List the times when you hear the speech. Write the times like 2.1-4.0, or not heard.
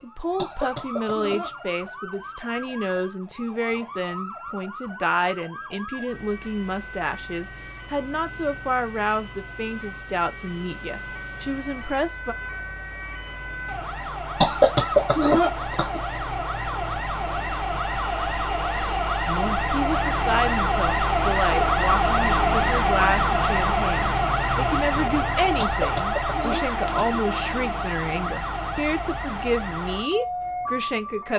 0.0-12.3, 19.2-31.3.